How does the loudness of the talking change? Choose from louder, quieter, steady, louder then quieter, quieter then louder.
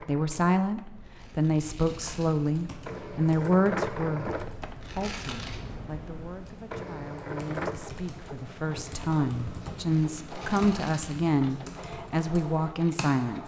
quieter then louder.